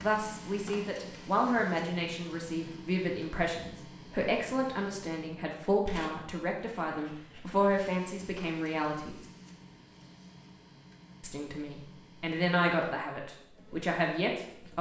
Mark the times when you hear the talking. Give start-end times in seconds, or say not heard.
0.0-9.2, 11.2-14.7.